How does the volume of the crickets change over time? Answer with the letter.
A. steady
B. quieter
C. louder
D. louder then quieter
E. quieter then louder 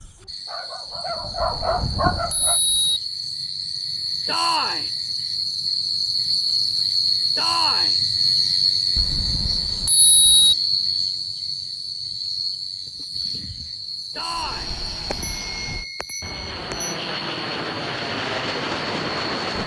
D.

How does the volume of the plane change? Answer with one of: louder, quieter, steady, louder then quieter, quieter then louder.
louder.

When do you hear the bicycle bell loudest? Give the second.
10 s.